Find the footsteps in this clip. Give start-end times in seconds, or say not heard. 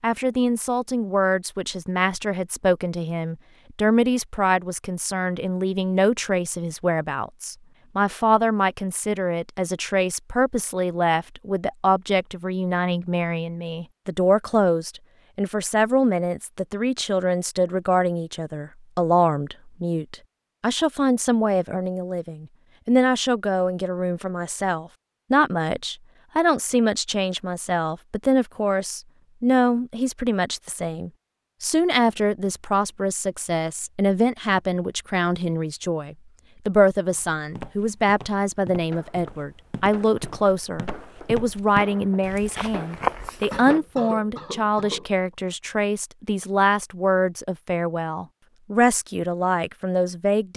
37.1-43.6.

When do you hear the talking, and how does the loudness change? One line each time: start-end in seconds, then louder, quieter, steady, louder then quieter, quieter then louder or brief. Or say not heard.
0.0-50.5 steady.